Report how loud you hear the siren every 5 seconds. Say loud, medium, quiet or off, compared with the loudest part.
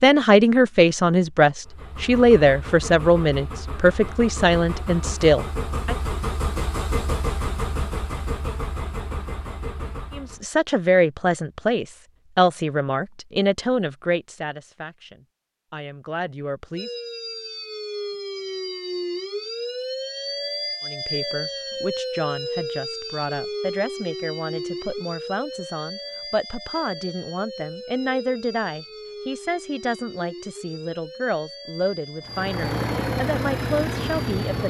off, off, off, loud, loud, medium, medium.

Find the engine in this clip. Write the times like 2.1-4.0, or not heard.
1.6-10.4, 32.2-34.6.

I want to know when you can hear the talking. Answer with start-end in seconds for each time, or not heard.
0.0-6.0, 10.2-16.9, 20.8-34.6.